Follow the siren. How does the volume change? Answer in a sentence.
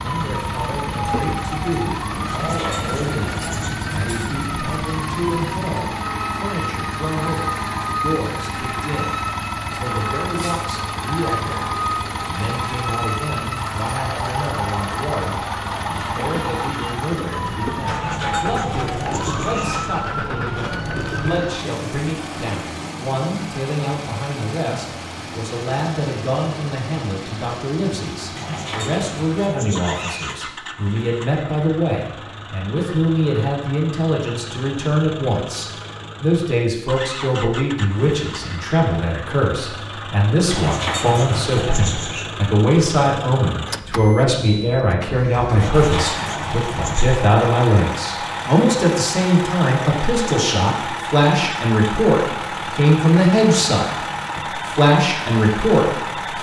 The loudness of the siren stays about the same.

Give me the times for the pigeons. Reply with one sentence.
You can hear the pigeons from 2.2 to 3.8 s, from 17.9 to 19.9 s, from 28.4 to 30.4 s, from 40.5 to 42.2 s and from 45.6 to 47.2 s.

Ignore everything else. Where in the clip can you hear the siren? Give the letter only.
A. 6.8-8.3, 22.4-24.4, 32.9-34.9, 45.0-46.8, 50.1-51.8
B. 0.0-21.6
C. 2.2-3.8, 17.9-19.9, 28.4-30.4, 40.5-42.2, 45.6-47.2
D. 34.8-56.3
B.